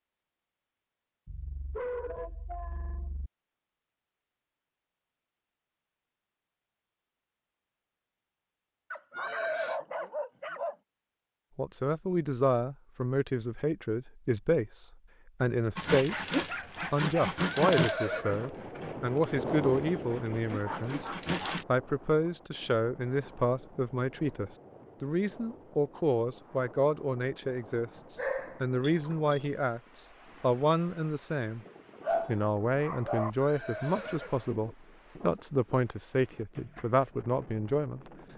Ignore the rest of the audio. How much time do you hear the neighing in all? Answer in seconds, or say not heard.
3 s.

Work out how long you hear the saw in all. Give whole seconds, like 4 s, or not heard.
6 s.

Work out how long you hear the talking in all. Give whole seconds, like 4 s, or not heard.
26 s.